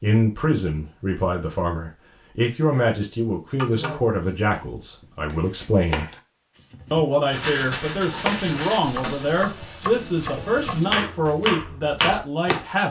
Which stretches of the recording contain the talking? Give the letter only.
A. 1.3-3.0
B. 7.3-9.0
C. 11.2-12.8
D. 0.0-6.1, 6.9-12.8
D.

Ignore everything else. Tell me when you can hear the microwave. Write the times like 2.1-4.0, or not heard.
not heard.